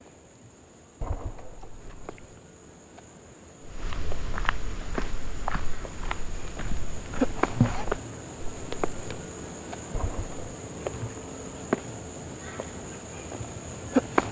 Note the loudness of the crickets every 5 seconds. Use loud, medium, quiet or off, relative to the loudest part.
quiet, loud, loud.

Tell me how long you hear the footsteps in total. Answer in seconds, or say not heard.
5 s.